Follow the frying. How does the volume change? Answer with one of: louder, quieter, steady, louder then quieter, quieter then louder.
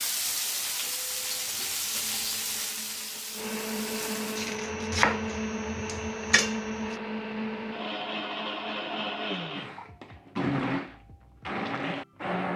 quieter.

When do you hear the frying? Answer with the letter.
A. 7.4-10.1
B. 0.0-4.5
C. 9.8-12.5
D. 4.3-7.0
B.